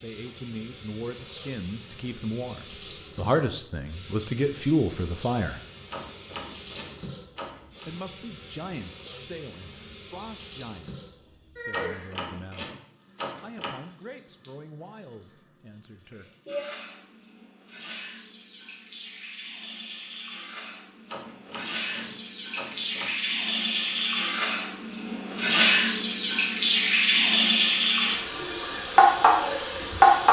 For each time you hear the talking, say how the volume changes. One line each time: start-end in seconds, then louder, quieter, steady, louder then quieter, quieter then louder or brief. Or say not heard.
0.0-5.6 louder
7.8-12.7 quieter
13.4-16.2 brief.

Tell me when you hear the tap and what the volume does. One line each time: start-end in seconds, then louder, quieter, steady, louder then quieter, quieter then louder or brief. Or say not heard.
0.0-30.2 louder.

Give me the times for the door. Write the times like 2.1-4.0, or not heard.
5.9-7.8, 11.7-13.8, 21.1-23.1.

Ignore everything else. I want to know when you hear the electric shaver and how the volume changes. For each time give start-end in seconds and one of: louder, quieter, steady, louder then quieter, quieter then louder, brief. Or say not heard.
not heard.